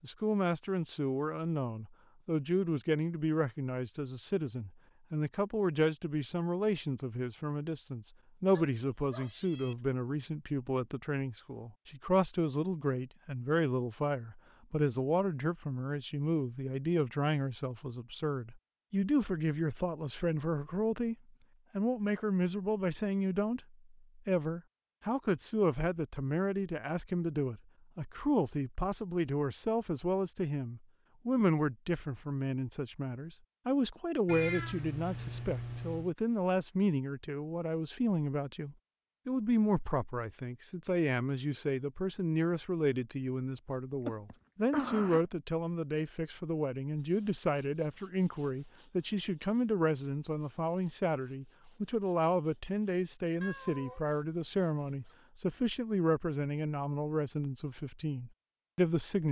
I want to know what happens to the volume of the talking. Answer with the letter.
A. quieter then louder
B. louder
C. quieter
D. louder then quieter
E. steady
E.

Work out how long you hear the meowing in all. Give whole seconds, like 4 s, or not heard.
4 s.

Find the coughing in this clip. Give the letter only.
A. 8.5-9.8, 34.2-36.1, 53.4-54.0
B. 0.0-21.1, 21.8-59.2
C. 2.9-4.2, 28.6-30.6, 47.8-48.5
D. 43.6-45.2
D.